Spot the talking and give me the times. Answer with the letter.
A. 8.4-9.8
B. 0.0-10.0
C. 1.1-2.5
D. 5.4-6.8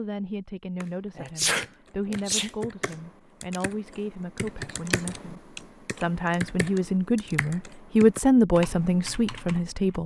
B.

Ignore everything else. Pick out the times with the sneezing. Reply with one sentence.
You can hear the sneezing from 1.1 to 2.5 s.